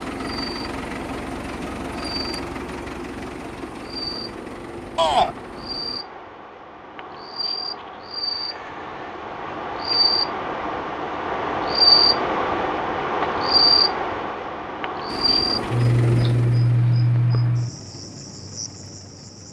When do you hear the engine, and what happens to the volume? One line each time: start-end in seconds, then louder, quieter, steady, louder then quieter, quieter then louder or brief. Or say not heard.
0.0-6.0 quieter
15.1-19.4 quieter.